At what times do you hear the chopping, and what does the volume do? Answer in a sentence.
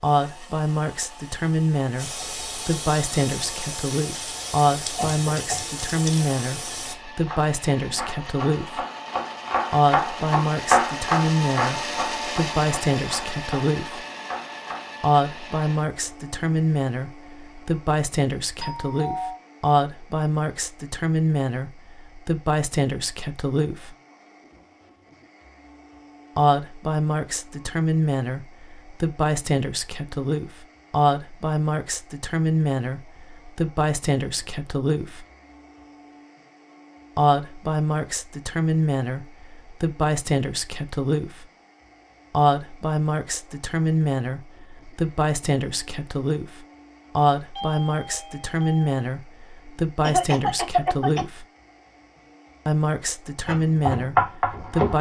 You can hear the chopping from 7.2 to 14.9 s, getting louder then quieter; and briefly from 53.5 to 54.9 s.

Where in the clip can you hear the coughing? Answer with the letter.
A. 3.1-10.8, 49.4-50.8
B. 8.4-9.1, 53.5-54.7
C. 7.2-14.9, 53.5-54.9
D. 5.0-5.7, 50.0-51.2
D.